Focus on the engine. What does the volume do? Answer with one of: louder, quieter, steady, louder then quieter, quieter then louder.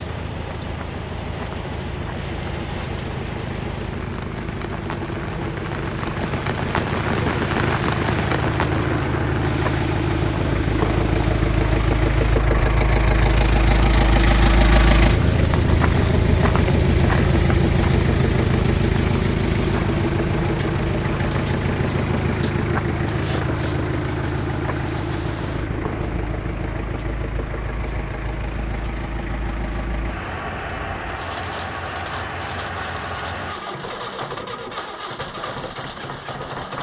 louder then quieter.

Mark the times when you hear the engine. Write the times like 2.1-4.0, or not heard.
0.0-36.7.